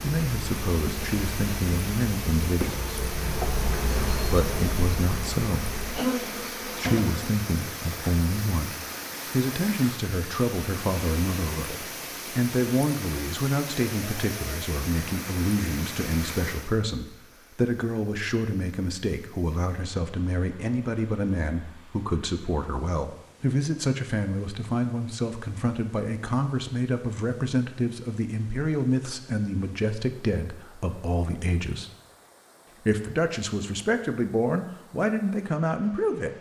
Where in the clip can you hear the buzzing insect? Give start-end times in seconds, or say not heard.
0.0-7.3.